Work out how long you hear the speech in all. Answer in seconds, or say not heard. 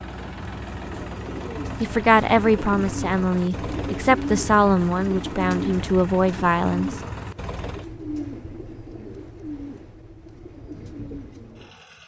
5 s.